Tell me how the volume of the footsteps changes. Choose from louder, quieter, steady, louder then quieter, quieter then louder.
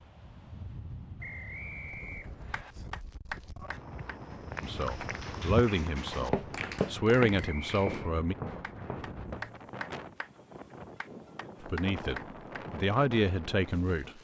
louder then quieter.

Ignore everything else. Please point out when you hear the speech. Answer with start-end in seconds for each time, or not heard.
4.6-8.3, 11.6-14.1.